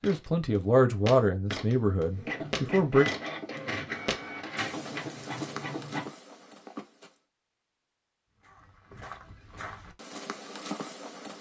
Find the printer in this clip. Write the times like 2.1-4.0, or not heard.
2.1-6.1.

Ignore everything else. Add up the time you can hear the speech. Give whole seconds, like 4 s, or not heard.
3 s.